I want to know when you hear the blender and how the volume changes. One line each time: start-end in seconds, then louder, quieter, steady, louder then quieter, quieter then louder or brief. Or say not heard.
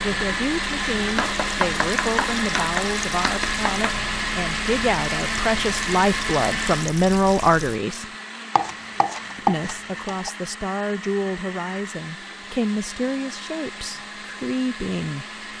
0.0-15.5 quieter.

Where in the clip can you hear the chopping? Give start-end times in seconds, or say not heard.
1.1-4.0, 8.6-10.3.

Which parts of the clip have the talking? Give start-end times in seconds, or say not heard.
0.0-8.1, 9.3-15.4.